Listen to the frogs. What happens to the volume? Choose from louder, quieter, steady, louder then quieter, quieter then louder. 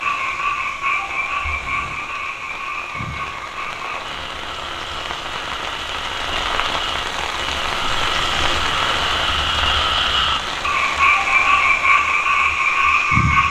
quieter then louder.